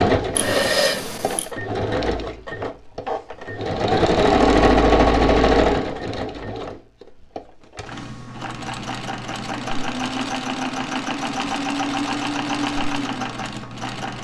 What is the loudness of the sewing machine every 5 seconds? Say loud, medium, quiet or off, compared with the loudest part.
loud, loud, medium.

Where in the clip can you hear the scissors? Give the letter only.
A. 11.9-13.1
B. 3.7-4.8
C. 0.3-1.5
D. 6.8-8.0
C.